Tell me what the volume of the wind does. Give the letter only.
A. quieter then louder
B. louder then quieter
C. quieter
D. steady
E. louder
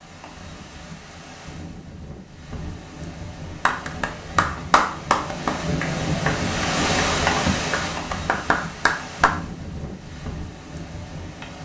B.